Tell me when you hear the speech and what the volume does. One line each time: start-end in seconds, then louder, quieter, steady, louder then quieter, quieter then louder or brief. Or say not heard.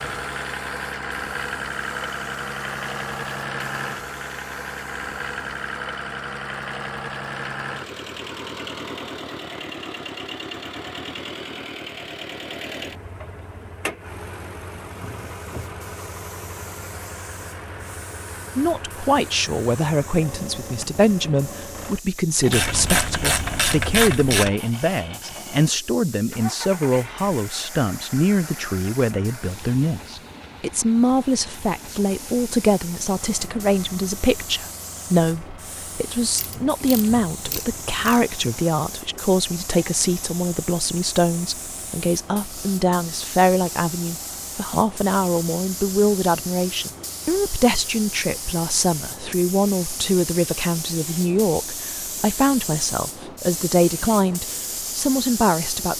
18.6-55.9 steady.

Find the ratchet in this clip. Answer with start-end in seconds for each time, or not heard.
22.5-24.5, 36.4-38.2.